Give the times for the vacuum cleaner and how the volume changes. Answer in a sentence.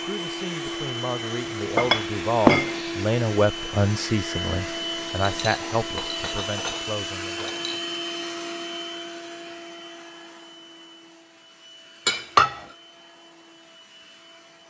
The vacuum cleaner can be heard from 0.0 to 14.6 s, getting quieter.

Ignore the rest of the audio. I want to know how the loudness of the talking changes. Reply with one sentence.
The volume of the talking goes up, then down.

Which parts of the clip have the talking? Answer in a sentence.
You can hear the talking from 0.0 to 7.5 s.